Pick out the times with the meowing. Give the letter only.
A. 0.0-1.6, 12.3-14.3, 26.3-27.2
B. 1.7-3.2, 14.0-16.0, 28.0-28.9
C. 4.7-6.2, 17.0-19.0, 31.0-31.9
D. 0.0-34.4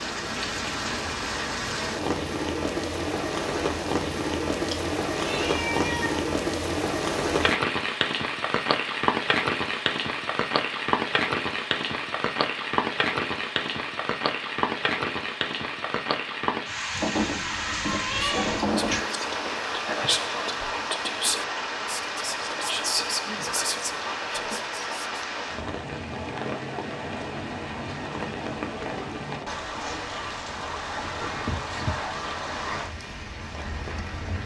C.